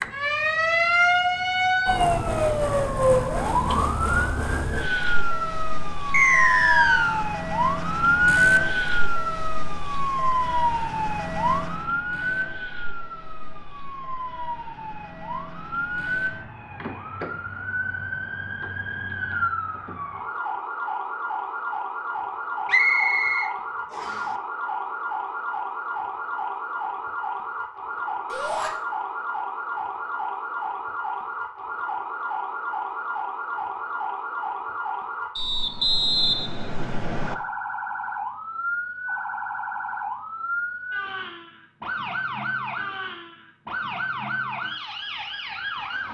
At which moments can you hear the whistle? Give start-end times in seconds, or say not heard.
6.1-7.2, 22.6-24.1, 35.4-37.4.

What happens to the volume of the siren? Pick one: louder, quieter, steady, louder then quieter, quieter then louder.
quieter.